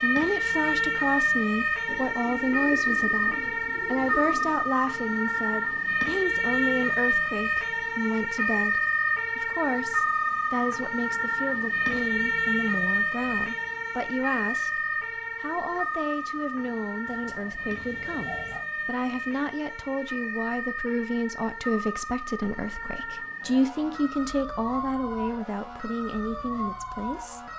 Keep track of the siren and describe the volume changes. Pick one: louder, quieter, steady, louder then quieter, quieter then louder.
quieter.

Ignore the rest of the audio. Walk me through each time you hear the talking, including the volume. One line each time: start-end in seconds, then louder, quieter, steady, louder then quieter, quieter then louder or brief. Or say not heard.
0.0-27.4 steady.